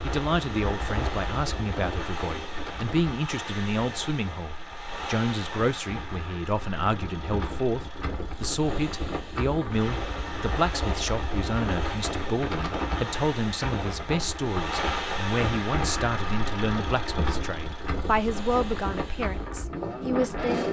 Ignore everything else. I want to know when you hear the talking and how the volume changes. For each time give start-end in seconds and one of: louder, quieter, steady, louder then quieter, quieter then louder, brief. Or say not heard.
0.0-20.6 steady.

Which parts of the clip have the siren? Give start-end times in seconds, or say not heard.
not heard.